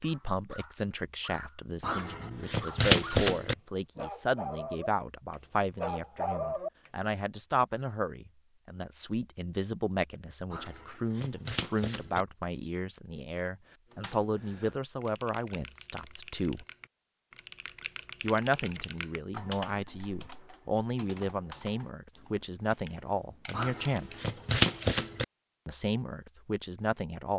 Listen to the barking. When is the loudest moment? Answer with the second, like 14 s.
6 s.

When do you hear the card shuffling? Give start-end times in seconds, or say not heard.
1.8-3.5, 10.5-12.2, 23.5-25.2.